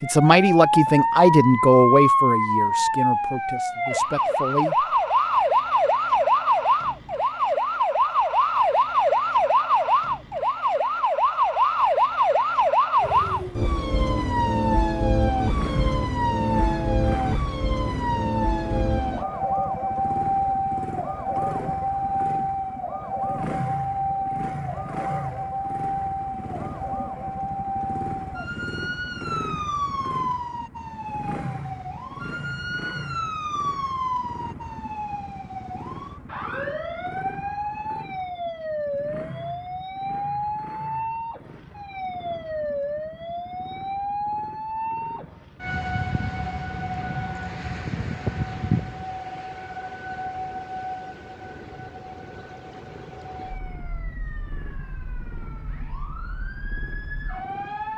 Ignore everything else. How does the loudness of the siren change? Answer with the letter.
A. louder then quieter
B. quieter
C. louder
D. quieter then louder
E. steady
B.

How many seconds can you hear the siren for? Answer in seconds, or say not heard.
58 s.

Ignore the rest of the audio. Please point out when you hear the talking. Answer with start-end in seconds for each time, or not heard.
0.0-4.8.